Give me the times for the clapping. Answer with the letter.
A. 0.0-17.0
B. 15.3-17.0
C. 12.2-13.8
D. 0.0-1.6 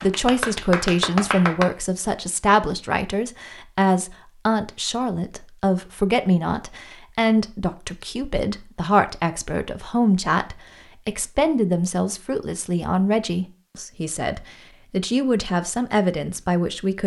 D.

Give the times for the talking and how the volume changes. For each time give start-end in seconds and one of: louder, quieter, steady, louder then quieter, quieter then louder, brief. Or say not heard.
0.0-17.0 steady.